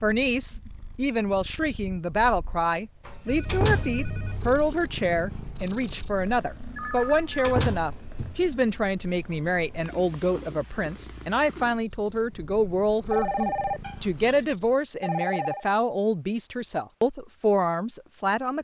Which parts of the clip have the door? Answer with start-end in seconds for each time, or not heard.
3.0-4.0, 7.0-8.4, 13.8-14.4.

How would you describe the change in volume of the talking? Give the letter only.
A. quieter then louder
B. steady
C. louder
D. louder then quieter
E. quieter
B.